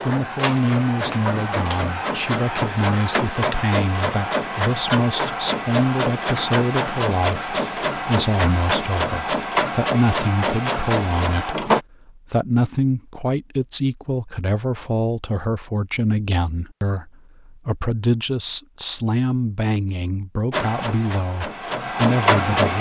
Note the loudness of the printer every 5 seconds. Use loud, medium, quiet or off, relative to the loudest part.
loud, loud, loud, off, loud.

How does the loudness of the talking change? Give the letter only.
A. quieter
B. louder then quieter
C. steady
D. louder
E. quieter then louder
C.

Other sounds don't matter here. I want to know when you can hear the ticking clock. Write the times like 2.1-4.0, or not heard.
not heard.